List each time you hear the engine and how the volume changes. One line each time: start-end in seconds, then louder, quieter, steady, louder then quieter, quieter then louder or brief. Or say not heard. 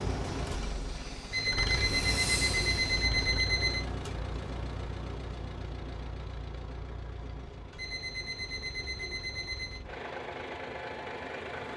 0.0-11.7 quieter then louder.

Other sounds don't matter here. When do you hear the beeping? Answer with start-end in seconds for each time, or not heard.
1.3-3.9, 7.8-9.8.